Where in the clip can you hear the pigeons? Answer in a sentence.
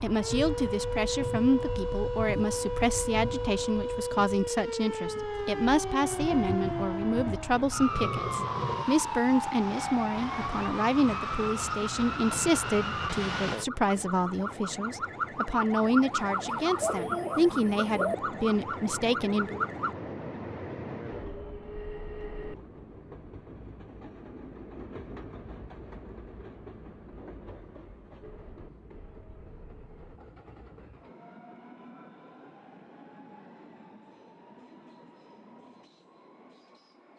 You can hear the pigeons from 16.8 to 18.1 s.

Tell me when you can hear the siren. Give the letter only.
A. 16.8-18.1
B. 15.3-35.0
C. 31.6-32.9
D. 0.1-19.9
D.